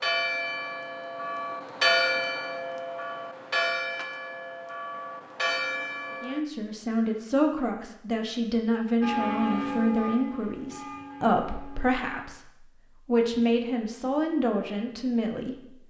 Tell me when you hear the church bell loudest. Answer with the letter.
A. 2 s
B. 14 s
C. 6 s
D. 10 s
A.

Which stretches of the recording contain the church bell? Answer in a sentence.
The church bell can be heard from 0.0 to 6.4 s and from 9.0 to 12.2 s.